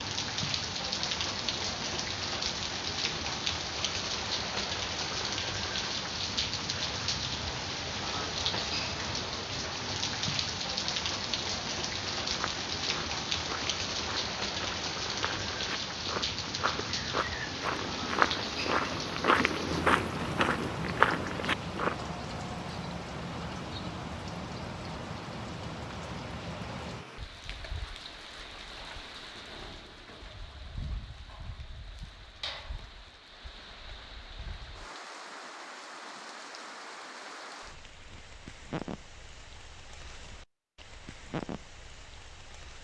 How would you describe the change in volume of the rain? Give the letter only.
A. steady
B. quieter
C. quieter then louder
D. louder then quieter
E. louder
B.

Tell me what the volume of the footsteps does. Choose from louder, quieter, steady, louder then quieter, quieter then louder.
louder.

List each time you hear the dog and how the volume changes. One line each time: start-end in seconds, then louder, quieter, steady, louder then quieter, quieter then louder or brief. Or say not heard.
not heard.